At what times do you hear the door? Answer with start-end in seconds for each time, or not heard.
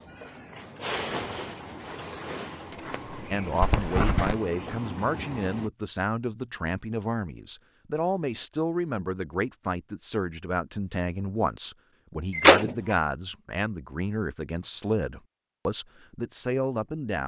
2.7-3.6, 12.3-12.9.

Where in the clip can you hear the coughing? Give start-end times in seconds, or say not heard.
3.6-4.4.